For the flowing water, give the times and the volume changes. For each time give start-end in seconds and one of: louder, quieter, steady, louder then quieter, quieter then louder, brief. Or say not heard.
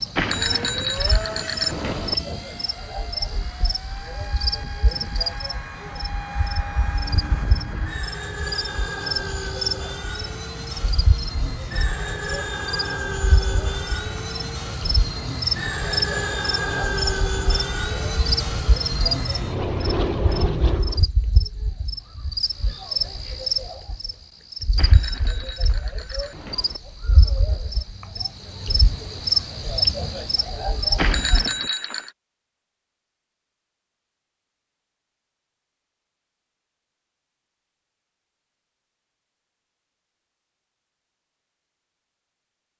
not heard.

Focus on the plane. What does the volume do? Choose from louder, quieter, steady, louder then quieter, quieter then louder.
louder.